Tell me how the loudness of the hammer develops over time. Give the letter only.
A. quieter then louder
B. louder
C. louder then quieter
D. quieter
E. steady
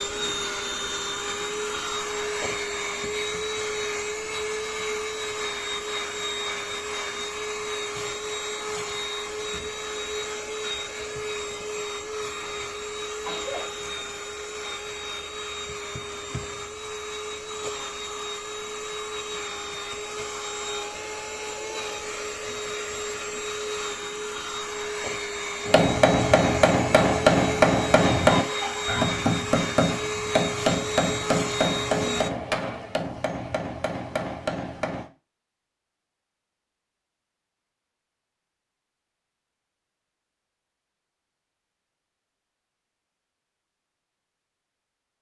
D.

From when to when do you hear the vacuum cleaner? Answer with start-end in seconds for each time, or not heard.
0.0-32.3.